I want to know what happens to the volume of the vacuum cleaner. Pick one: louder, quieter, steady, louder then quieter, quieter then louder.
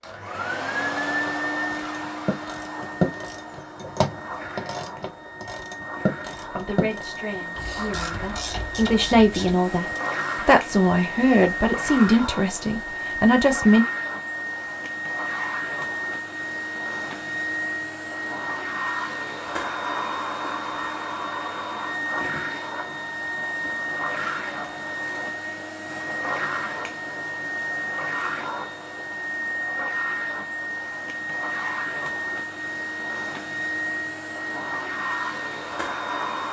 steady.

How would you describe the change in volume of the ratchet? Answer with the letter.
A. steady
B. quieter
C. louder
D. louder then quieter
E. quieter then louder
D.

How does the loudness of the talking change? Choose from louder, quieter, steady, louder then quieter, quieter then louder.
louder.